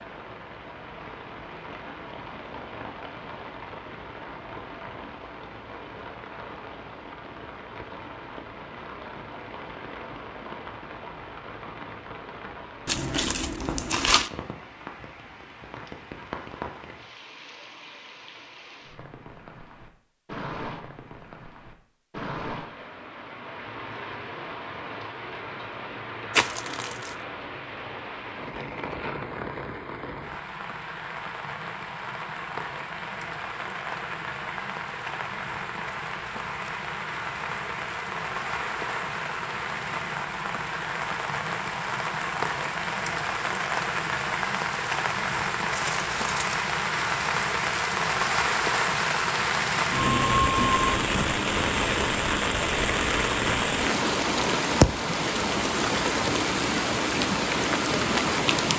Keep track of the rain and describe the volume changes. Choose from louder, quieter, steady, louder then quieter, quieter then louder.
louder.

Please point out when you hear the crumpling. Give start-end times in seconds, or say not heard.
12.8-14.3, 26.3-27.1, 45.8-46.6.